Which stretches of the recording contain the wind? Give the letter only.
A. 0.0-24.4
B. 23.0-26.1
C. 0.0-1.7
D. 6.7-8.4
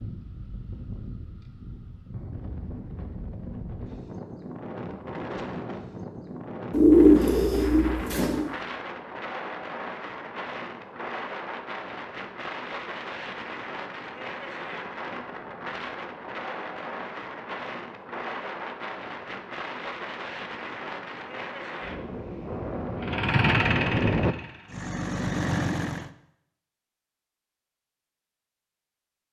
A.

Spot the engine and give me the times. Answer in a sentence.
The engine can be heard from 23.0 to 26.1 s.